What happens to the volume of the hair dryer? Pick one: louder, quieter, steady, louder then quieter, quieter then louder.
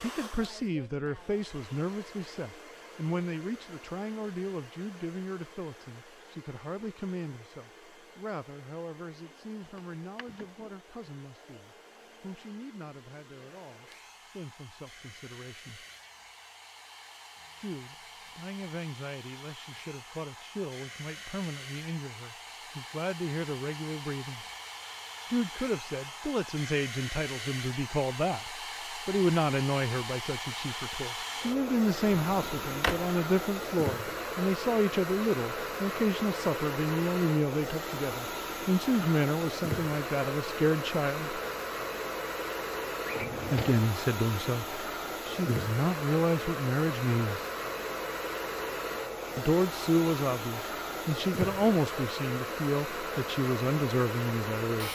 louder.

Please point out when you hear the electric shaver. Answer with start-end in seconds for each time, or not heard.
not heard.